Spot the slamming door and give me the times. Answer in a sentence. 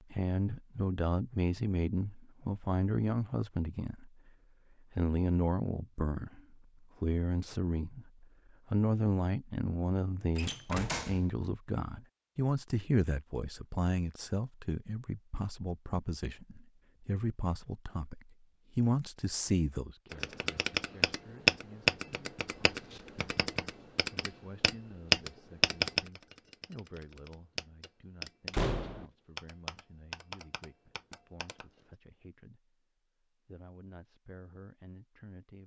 You can hear the slamming door from 10.3 to 11.2 s and from 28.5 to 29.1 s.